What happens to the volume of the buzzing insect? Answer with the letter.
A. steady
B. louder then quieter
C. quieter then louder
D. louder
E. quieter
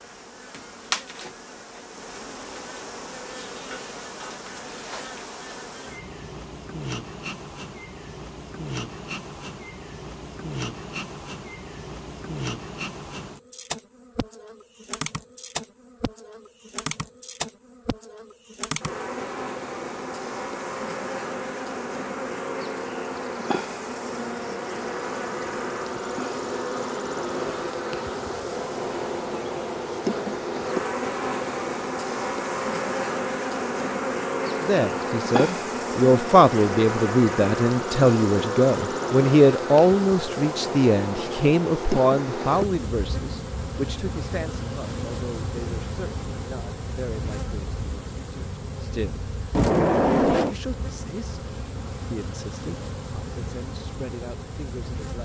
B.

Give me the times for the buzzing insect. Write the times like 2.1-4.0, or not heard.
0.0-55.1.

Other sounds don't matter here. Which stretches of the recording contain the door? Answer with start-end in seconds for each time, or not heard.
49.5-50.5.